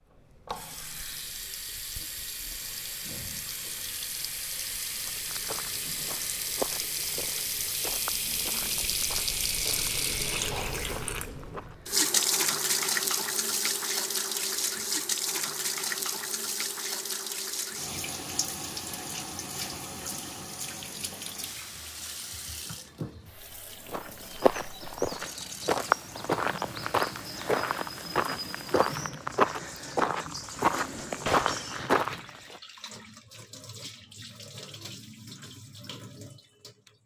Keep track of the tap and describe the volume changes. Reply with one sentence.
The loudness of the tap goes up, then down.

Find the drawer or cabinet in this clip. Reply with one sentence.
You can hear the drawer or cabinet from 30.8 to 31.6 s.